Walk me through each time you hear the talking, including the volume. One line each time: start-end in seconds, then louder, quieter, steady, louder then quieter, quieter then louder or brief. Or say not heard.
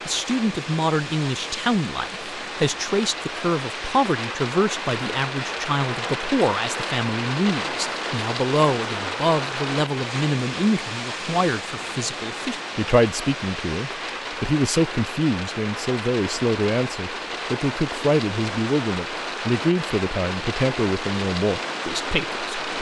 0.1-22.7 steady.